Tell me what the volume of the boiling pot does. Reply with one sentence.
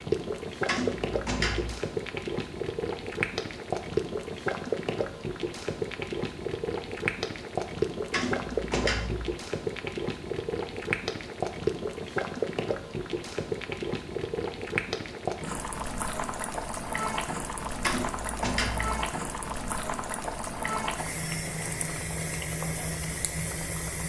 The loudness of the boiling pot stays about the same.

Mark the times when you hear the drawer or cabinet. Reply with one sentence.
The drawer or cabinet can be heard from 0.7 to 1.8 s, from 8.1 to 9.3 s and from 17.8 to 19.0 s.